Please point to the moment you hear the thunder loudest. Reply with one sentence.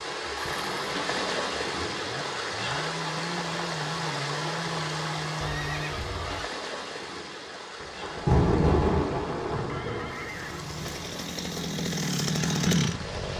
The loudest moment of the thunder is at 8 seconds.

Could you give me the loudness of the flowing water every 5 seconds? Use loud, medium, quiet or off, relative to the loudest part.
loud, medium, medium.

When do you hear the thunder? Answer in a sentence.
The thunder can be heard from 7.8 to 11.1 s.